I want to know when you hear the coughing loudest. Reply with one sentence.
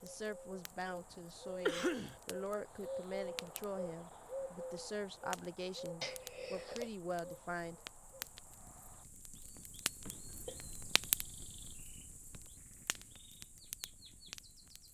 The loudest moment of the coughing is at 2 seconds.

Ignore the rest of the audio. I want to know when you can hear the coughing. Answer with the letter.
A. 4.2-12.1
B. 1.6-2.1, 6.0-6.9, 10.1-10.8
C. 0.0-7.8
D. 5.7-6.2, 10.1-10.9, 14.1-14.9
B.